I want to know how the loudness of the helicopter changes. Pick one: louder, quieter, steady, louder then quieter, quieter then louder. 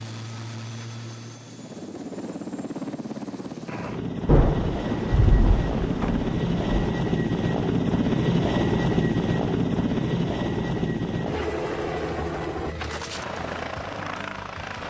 louder then quieter.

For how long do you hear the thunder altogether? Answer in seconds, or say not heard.
3 s.